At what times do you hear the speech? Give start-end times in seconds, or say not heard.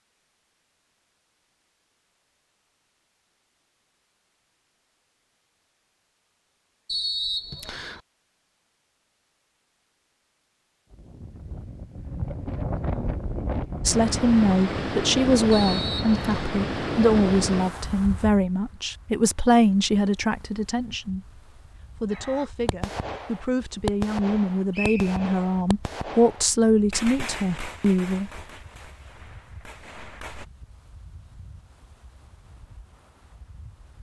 13.8-28.3.